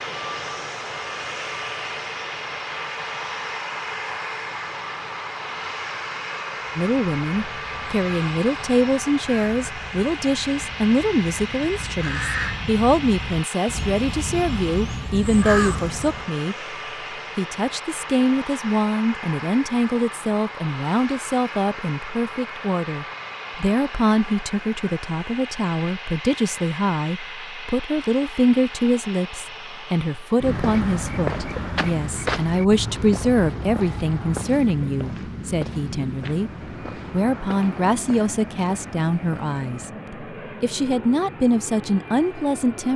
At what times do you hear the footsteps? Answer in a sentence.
You can hear the footsteps from 30.4 to 39.6 s.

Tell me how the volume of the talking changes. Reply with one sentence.
The volume of the talking stays about the same.